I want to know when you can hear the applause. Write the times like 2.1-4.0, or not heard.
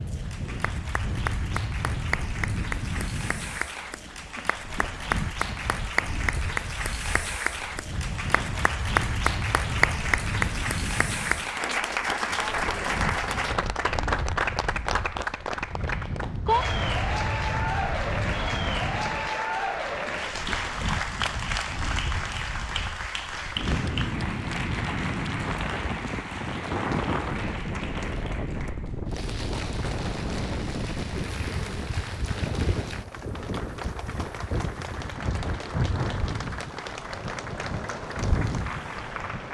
0.0-39.4.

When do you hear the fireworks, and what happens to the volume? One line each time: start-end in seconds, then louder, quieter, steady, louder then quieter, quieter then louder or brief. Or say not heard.
not heard.